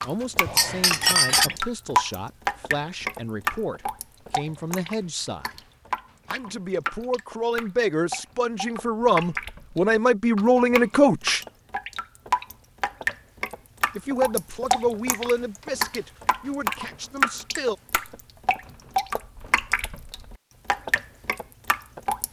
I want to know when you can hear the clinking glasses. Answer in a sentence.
You can hear the clinking glasses from 0.5 to 1.6 s.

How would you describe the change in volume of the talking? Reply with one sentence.
The loudness of the talking goes up, then down.